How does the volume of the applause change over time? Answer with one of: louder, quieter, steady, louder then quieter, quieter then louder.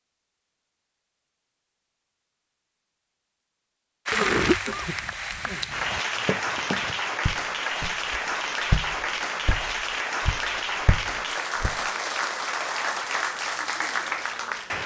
steady.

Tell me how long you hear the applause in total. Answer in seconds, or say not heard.
11 s.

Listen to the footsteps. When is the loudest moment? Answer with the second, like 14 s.
9 s.